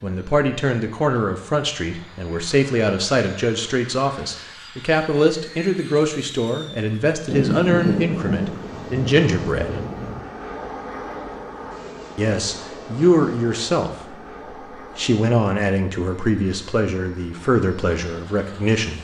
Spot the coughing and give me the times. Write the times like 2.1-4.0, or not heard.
not heard.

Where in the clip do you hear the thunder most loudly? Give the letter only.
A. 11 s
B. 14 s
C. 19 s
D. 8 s
D.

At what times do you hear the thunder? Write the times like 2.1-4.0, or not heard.
7.3-10.2.